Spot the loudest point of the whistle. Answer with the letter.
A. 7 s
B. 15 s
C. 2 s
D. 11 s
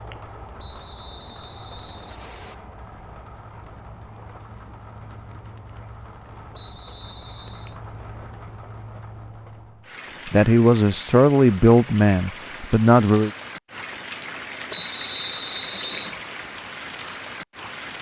B.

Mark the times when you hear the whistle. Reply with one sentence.
The whistle can be heard from 0.6 to 2.5 s, from 6.5 to 7.8 s and from 14.7 to 16.2 s.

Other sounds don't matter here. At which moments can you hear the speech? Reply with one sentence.
The speech can be heard from 10.2 to 13.3 s.